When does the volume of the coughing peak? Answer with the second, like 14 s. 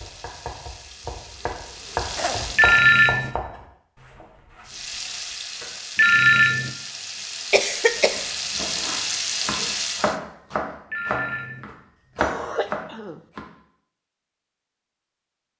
8 s.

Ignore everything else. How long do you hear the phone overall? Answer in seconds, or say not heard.
2 s.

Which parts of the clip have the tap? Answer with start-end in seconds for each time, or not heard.
0.0-3.1, 4.7-10.2.